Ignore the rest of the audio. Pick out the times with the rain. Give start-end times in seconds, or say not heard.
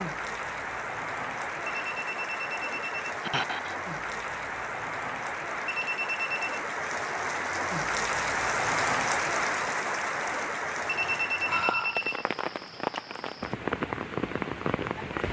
0.0-15.2.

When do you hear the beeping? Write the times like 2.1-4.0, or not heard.
1.6-3.0, 5.7-6.6, 10.8-12.2.